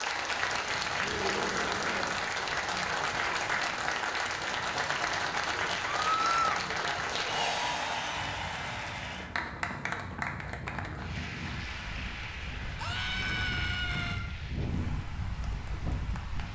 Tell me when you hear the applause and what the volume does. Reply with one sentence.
You can hear the applause from 0.0 to 16.4 s, getting quieter.